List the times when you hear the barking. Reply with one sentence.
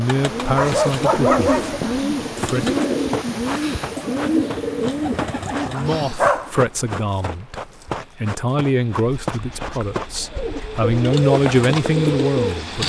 The barking can be heard from 0.6 to 1.8 s, from 5.8 to 6.5 s and from 9.2 to 10.9 s.